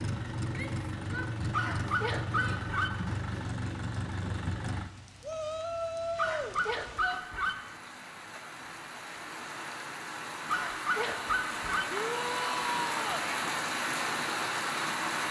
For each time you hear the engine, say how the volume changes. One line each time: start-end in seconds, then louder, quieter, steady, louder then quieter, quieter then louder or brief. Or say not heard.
0.0-4.9 steady.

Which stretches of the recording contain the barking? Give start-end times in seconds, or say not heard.
1.5-2.9, 6.2-7.5, 10.4-11.8.